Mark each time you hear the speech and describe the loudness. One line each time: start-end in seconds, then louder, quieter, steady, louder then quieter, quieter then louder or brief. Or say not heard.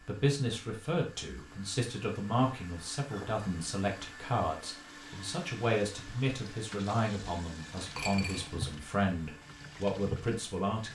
0.0-10.8 steady.